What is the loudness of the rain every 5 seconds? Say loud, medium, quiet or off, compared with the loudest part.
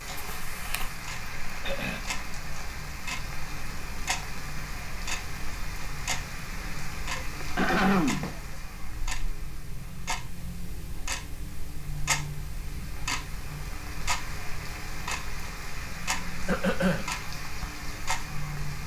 loud, loud, medium, loud.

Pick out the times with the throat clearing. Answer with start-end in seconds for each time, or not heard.
1.6-2.1, 6.8-8.2, 16.4-17.1.